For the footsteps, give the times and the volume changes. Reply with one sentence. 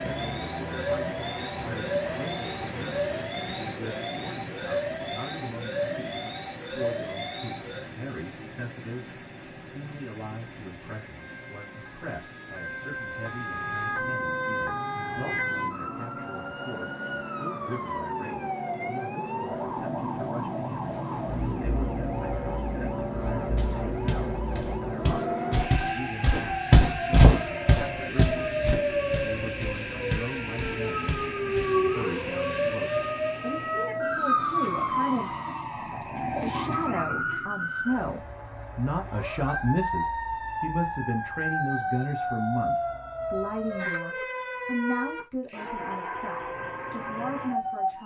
You can hear the footsteps from 23.4 to 31.6 s, getting louder then quieter.